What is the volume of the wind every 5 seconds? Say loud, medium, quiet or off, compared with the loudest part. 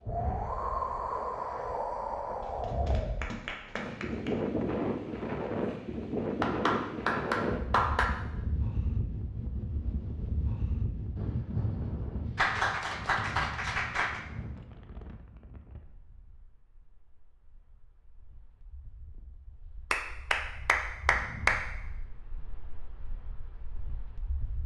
loud, loud, medium, quiet, quiet.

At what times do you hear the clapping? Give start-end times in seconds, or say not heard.
2.4-4.3, 6.4-8.1, 12.3-14.2, 19.9-21.6.